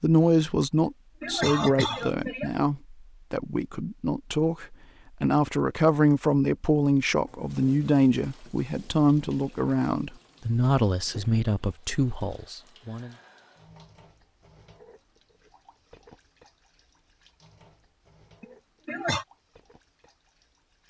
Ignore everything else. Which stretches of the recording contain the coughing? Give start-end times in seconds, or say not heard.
0.8-2.5, 18.4-19.2.